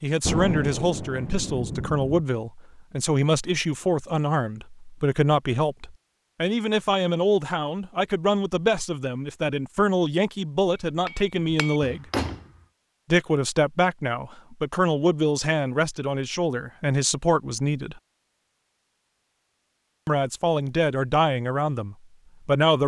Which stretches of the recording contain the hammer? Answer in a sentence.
You can hear the hammer from 10.8 to 12.5 s.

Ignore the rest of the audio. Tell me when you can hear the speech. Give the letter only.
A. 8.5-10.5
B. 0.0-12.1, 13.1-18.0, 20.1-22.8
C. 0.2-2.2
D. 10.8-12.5
B.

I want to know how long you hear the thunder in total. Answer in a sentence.
The thunder can be heard for 2 seconds in total.